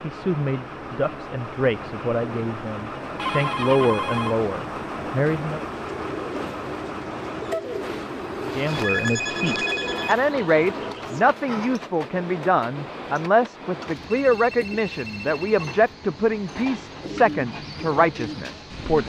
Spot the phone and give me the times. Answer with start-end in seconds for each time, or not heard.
3.1-4.5, 8.7-10.2, 14.1-15.7.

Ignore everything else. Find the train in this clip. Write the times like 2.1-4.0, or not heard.
0.0-19.0.